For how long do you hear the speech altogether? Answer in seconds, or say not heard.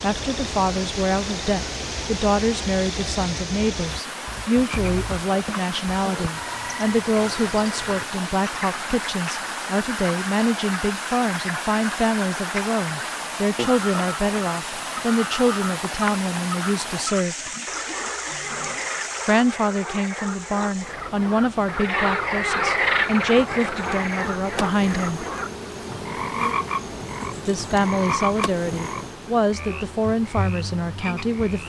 28 s.